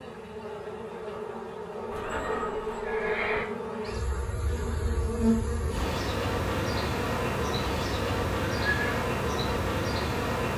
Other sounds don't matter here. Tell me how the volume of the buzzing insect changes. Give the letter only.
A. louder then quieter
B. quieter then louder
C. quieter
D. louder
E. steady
D.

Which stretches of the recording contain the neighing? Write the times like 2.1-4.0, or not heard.
1.9-3.5, 8.7-9.1.